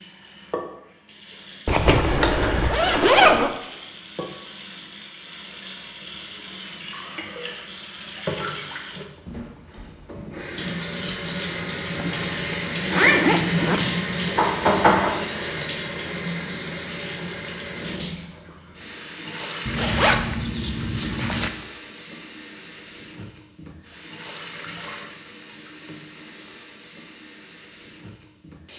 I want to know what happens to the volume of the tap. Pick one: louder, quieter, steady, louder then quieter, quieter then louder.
louder then quieter.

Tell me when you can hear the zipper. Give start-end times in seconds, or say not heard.
1.6-3.5, 11.9-13.8, 19.6-21.5.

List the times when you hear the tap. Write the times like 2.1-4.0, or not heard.
0.0-28.7.